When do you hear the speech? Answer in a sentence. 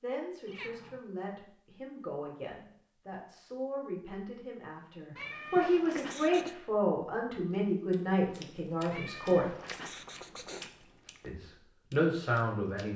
You can hear the speech from 0.0 to 9.6 s and from 11.2 to 12.9 s.